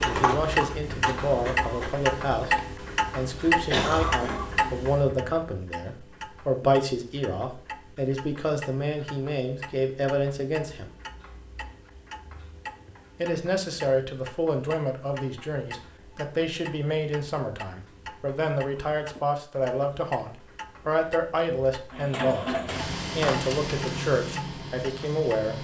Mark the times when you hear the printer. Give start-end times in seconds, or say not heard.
0.0-2.0, 21.9-25.5.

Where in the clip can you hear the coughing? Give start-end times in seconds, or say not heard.
3.6-4.5.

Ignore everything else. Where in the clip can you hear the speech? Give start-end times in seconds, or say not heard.
0.0-10.9, 13.2-22.6, 23.1-25.5.